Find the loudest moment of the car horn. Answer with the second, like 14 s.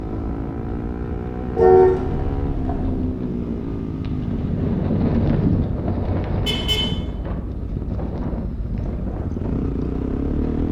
2 s.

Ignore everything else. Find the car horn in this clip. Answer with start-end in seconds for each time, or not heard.
1.6-3.0, 6.5-6.9.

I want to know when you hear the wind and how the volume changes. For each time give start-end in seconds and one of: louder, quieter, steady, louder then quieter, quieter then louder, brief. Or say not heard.
0.0-10.6 louder then quieter.